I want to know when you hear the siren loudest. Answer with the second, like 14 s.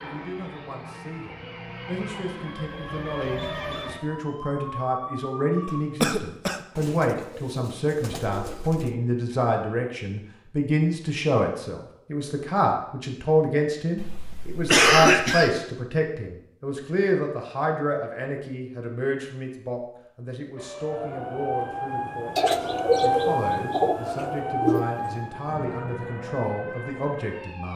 23 s.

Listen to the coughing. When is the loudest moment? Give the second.
15 s.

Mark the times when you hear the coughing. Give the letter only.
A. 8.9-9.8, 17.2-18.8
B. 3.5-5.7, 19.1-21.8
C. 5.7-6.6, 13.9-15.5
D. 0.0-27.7
C.